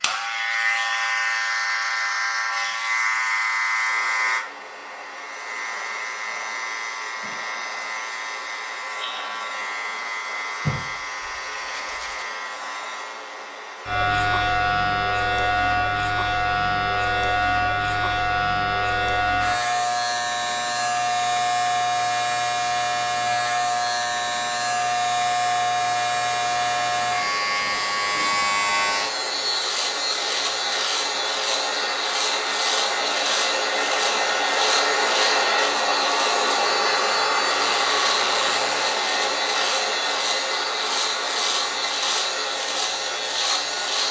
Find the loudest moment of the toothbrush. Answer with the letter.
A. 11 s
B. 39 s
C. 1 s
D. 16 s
A.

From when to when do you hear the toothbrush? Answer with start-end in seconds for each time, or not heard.
10.6-12.2.